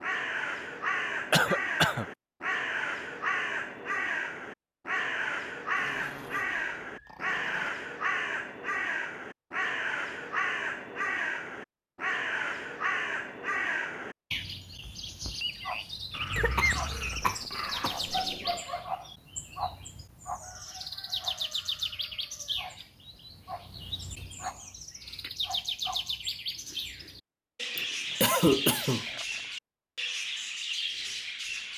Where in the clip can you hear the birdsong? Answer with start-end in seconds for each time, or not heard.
0.0-31.7.